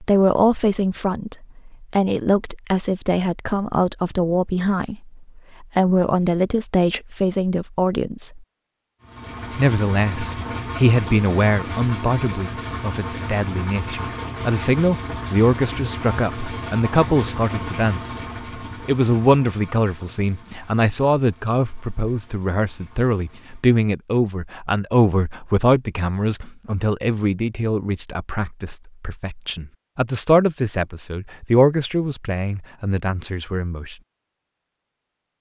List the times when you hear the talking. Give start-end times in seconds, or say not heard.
0.0-8.4, 9.5-18.1, 18.9-34.0.